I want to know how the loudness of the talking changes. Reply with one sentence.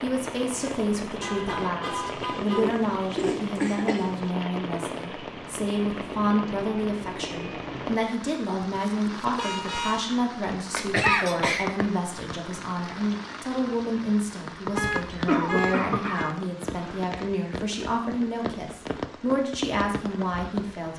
The volume of the talking stays about the same.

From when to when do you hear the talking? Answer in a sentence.
The talking can be heard from 0.0 to 20.9 s.